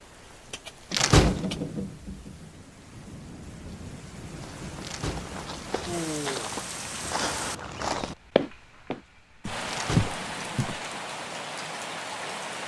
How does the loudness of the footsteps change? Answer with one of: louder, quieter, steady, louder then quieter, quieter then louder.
louder.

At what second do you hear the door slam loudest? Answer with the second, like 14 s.
1 s.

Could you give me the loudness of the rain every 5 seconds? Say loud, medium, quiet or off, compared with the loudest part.
medium, loud, loud.